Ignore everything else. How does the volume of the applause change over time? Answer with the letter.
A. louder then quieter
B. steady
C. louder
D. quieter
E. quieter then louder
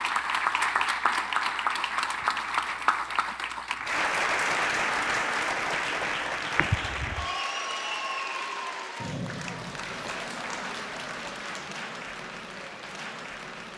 D.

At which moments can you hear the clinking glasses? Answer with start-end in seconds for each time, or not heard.
6.5-7.3.